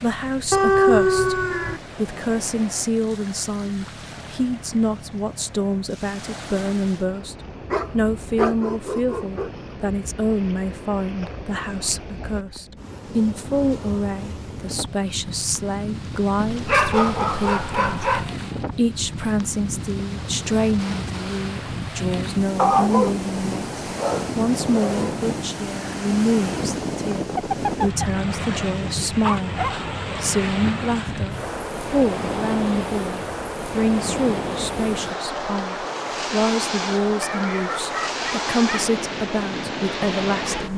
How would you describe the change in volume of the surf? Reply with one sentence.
The volume of the surf goes up.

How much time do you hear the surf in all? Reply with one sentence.
You can hear the surf for 41 seconds altogether.